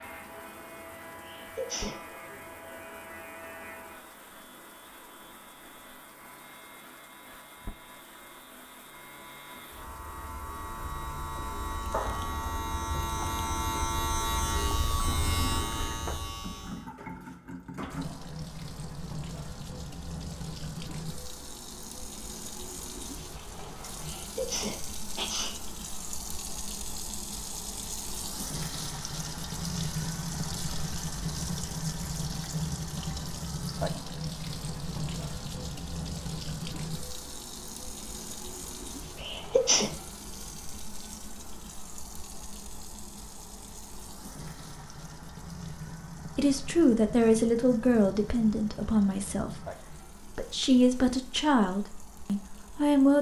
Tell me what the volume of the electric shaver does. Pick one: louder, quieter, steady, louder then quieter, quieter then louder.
quieter then louder.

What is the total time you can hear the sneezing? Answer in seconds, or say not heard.
3 s.